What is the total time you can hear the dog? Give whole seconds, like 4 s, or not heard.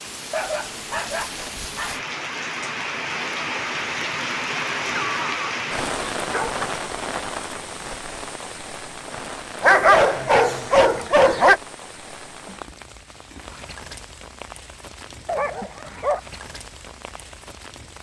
6 s.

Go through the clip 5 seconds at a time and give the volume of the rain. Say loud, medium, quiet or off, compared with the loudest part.
loud, loud, medium, quiet.